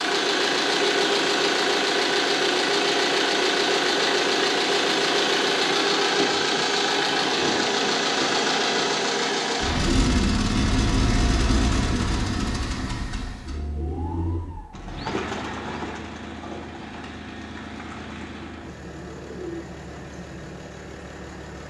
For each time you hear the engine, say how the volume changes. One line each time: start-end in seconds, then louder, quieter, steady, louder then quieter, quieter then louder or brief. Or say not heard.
0.0-21.6 quieter.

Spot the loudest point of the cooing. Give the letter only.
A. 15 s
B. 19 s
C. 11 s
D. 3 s
A.